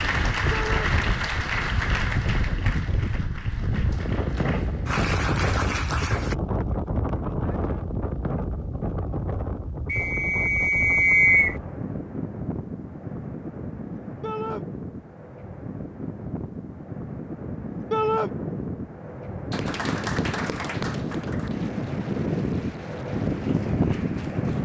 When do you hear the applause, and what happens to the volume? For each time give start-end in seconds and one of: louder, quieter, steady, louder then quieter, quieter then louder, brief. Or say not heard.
0.0-6.3 quieter then louder
19.5-24.6 quieter.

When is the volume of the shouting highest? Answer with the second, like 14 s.
18 s.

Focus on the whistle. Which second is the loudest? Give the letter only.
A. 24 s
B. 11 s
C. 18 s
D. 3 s
B.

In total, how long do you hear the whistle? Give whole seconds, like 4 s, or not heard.
2 s.